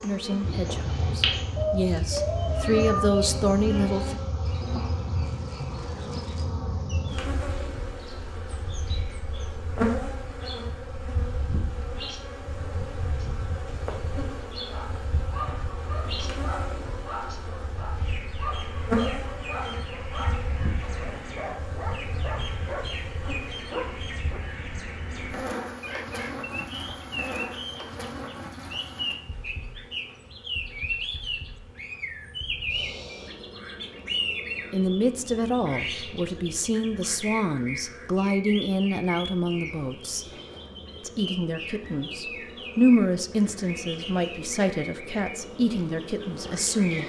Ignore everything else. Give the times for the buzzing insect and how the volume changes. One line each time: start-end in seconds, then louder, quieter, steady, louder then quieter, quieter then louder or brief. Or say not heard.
0.0-47.0 quieter.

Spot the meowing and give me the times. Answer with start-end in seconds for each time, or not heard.
1.6-3.2.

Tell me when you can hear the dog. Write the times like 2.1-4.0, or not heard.
14.7-24.4.